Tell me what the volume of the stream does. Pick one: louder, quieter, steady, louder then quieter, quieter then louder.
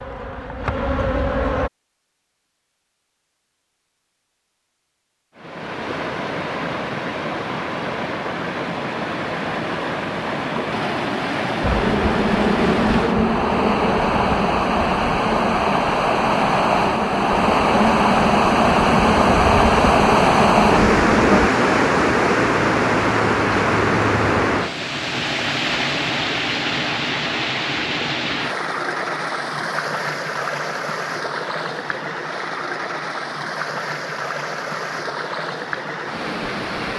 louder then quieter.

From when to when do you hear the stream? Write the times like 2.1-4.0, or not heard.
5.3-36.9.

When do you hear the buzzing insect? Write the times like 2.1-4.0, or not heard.
0.0-1.7, 11.6-21.5.